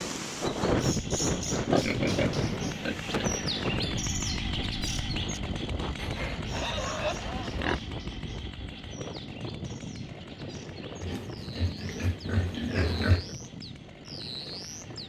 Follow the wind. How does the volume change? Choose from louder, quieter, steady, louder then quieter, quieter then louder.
quieter.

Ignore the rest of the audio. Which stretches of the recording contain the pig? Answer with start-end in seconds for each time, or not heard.
1.6-3.3, 6.0-7.8, 11.0-13.3.